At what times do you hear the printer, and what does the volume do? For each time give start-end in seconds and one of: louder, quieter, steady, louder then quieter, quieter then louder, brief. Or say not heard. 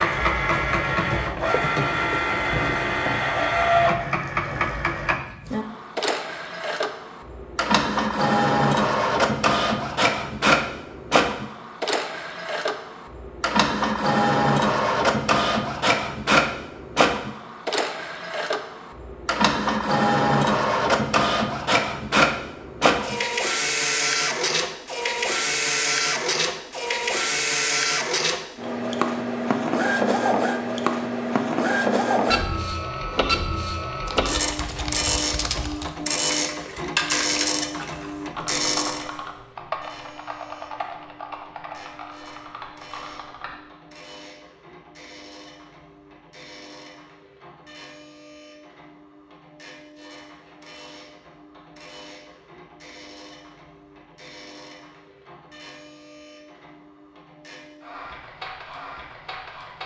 0.0-59.8 quieter.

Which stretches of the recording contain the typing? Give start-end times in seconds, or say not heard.
34.0-43.5.